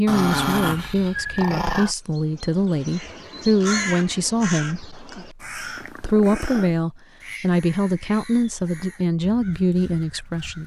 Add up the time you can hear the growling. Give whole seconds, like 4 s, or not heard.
3 s.